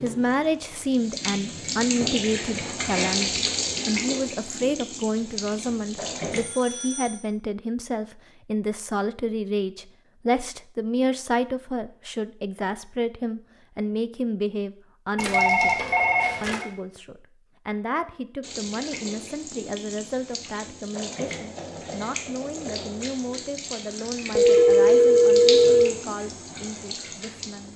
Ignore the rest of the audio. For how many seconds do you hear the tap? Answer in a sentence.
The tap can be heard for 16 seconds in total.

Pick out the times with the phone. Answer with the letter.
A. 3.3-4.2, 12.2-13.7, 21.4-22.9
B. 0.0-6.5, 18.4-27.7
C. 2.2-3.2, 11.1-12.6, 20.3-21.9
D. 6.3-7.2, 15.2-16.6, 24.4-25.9
D.